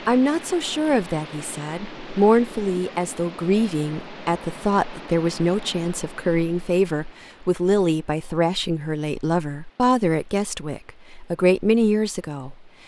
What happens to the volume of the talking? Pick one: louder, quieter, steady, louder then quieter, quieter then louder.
steady.